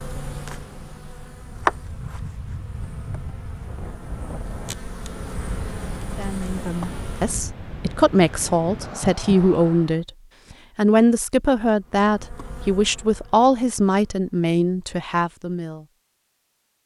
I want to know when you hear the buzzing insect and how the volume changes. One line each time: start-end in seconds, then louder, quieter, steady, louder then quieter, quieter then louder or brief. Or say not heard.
0.0-7.5 quieter then louder
11.7-14.3 brief.